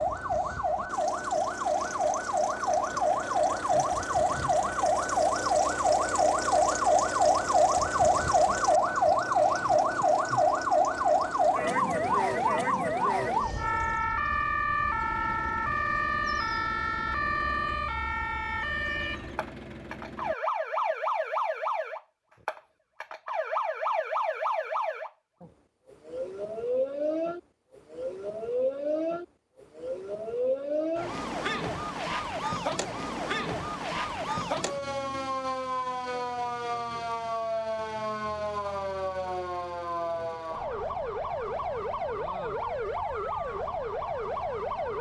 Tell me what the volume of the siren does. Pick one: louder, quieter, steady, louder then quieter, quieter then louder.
quieter.